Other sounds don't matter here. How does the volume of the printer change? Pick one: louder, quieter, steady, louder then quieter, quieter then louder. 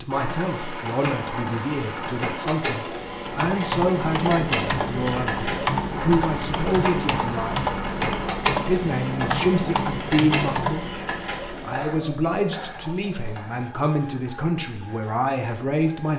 quieter.